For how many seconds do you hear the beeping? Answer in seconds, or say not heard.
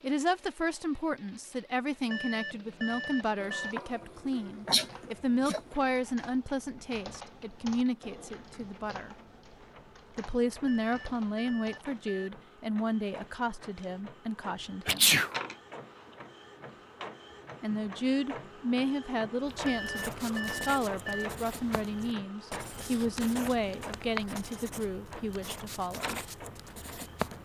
5 s.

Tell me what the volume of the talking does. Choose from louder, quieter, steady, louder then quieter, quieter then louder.
steady.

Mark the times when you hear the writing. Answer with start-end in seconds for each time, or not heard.
19.4-27.3.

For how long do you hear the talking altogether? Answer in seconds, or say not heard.
23 s.